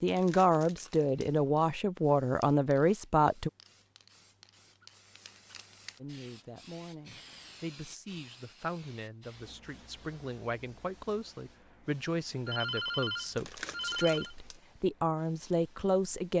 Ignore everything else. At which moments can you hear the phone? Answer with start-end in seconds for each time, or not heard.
12.4-14.3.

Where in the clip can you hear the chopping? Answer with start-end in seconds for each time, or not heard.
not heard.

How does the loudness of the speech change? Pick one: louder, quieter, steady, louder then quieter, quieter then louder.
quieter then louder.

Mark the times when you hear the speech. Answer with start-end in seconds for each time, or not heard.
0.0-3.5, 6.0-16.3.